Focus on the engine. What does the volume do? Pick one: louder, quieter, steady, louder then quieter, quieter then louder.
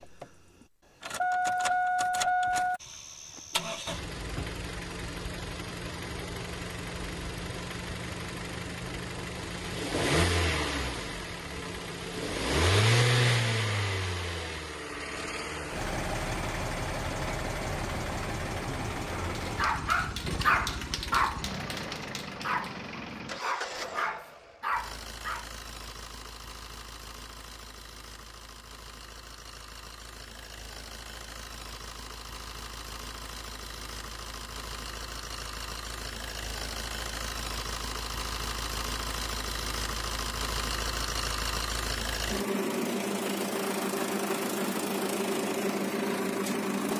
quieter then louder.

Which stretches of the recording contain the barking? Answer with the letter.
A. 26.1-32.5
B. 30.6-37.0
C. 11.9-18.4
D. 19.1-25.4
D.